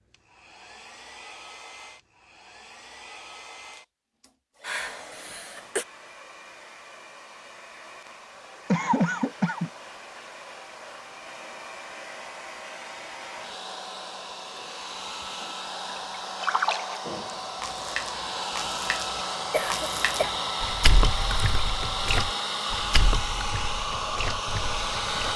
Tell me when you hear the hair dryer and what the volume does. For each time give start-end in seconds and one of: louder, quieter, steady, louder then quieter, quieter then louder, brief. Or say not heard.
0.0-25.3 louder.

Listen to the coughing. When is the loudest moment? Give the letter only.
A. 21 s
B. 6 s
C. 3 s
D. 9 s
D.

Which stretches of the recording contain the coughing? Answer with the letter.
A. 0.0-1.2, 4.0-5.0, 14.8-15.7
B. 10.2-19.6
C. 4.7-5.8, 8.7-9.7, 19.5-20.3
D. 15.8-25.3
C.